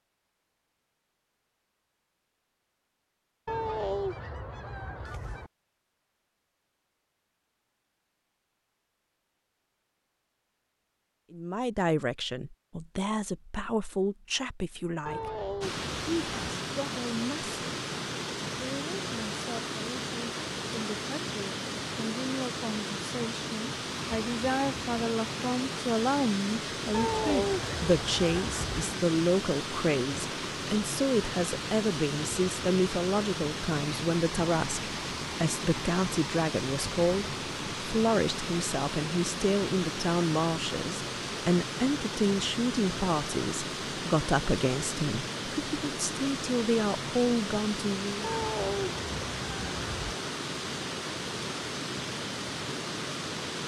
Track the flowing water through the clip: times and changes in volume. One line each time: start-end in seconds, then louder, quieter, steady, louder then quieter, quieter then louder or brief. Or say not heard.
15.6-53.6 steady.